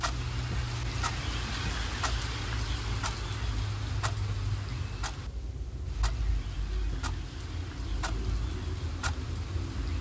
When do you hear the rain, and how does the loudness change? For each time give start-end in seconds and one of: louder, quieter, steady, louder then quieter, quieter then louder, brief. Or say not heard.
0.0-9.9 quieter.